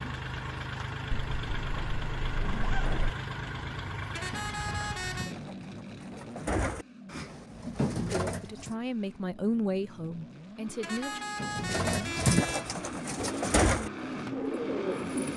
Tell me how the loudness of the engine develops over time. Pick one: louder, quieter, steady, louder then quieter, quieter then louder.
quieter then louder.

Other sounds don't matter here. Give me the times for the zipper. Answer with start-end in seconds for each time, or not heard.
1.1-3.0.